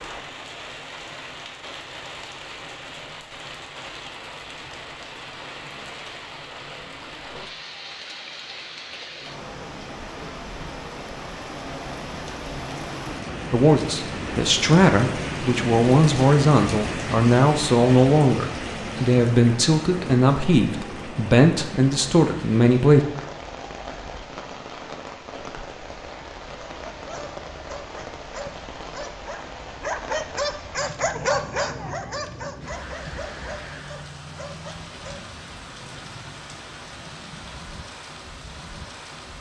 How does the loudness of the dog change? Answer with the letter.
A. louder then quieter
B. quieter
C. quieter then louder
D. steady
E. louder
A.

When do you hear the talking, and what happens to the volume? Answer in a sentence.
The talking can be heard from 13.5 to 23.0 s, at a steady volume.